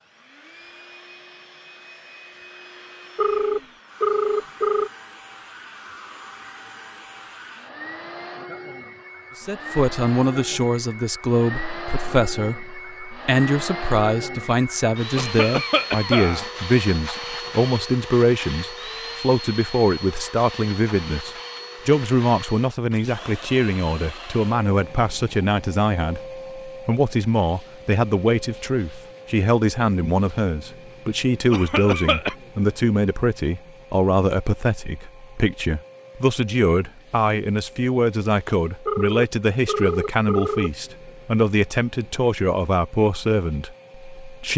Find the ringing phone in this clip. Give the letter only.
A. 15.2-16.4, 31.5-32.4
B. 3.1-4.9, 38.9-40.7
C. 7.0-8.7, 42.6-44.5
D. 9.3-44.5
B.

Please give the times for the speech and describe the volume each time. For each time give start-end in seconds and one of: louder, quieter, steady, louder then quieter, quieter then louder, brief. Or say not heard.
9.3-44.5 steady.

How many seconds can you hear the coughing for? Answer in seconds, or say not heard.
2 s.